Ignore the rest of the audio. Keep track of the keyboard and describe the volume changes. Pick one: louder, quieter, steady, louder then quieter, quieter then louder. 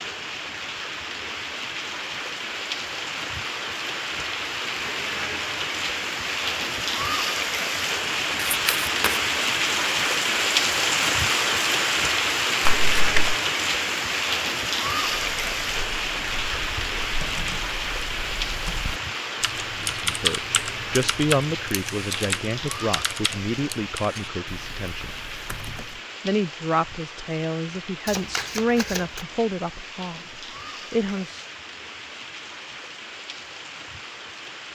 louder then quieter.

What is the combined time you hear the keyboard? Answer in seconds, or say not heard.
11 s.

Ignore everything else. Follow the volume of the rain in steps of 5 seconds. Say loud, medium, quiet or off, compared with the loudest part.
medium, loud, loud, medium, medium, quiet, quiet.